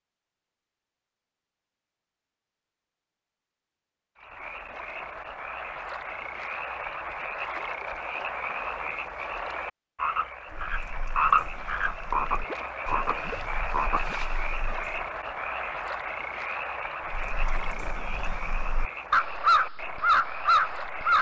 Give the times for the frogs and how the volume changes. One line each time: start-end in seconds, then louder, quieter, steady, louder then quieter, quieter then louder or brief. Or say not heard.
4.2-21.1 louder then quieter.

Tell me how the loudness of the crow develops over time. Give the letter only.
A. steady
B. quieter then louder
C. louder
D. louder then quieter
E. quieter
C.